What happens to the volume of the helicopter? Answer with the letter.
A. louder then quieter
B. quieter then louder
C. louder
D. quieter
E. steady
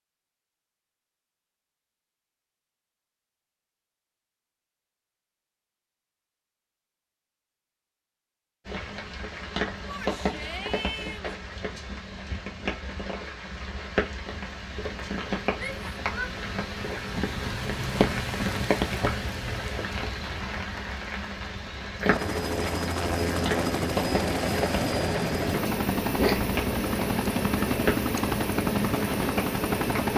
E.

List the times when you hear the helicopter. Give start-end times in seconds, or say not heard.
22.0-30.1.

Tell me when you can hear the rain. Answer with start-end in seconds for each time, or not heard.
8.7-30.1.